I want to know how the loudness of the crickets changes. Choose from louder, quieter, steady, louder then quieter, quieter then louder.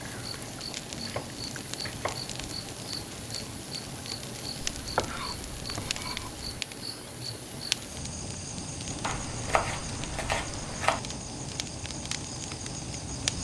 steady.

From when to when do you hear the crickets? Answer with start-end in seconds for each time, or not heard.
0.0-13.3.